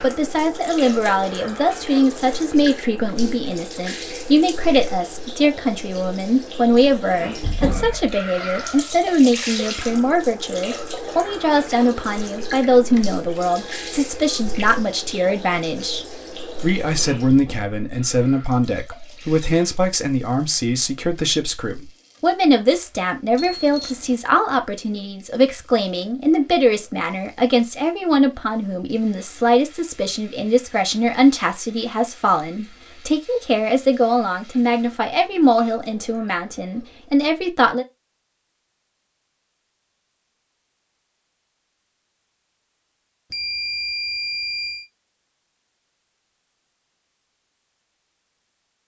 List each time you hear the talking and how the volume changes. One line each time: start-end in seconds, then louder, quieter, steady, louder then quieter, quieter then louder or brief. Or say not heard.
0.0-37.9 steady.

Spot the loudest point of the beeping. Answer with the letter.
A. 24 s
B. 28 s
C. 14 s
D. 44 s
D.